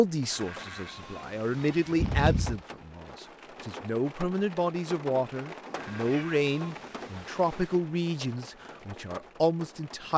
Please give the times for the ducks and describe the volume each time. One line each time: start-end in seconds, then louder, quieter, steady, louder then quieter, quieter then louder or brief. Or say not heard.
not heard.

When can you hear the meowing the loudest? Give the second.
2 s.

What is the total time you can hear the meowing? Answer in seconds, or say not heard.
2 s.